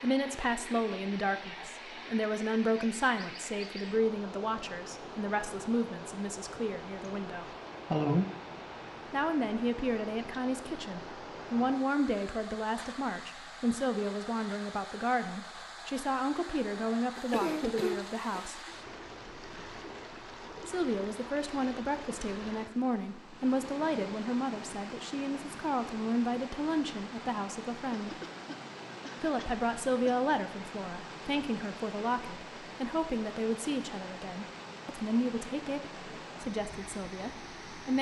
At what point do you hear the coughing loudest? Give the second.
8 s.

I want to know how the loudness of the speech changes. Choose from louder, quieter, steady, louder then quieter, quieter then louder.
steady.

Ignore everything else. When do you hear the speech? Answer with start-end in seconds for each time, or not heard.
0.0-7.5, 9.1-18.6, 20.6-28.1, 29.2-37.9.